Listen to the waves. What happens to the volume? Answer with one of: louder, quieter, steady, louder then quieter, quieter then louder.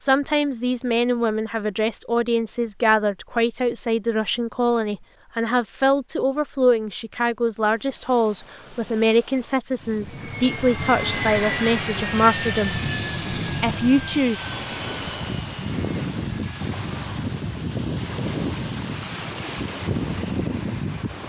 louder.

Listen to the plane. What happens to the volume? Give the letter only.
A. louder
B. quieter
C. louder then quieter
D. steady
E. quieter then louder
B.